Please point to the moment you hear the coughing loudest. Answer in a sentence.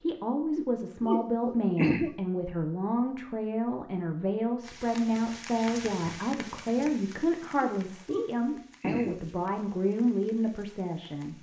The volume of the coughing peaks at 2 seconds.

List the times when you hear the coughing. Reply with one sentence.
The coughing can be heard from 0.6 to 2.1 s and from 7.6 to 9.2 s.